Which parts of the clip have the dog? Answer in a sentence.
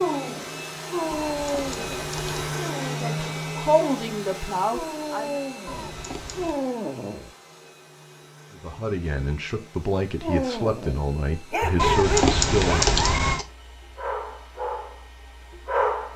You can hear the dog from 0.0 to 7.3 s and from 10.2 to 16.1 s.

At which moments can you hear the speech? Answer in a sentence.
The speech can be heard from 3.0 to 5.4 s and from 8.6 to 12.9 s.